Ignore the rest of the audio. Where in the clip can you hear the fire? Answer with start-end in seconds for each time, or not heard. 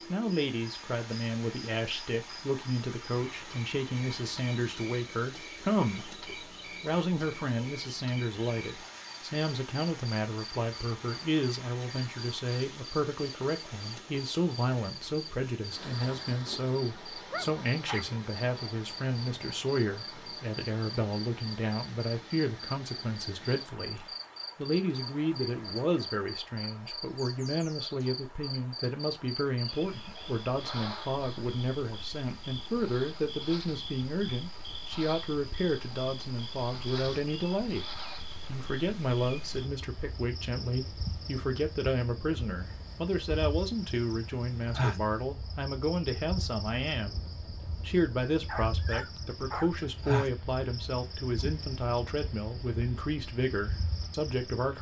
not heard.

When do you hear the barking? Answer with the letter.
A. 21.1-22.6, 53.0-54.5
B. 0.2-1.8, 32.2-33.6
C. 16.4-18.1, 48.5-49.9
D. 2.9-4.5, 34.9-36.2
C.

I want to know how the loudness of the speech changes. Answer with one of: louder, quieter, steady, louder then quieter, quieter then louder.
steady.